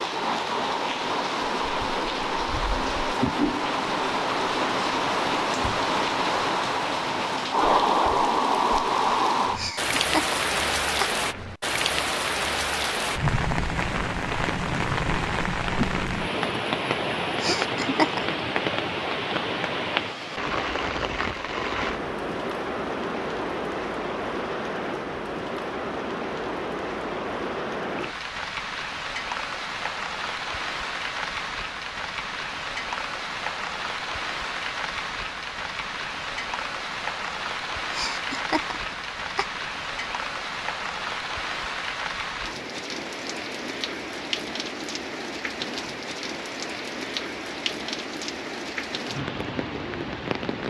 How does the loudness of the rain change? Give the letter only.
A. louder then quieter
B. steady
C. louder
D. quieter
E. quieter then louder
D.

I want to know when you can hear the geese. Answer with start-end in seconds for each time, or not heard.
not heard.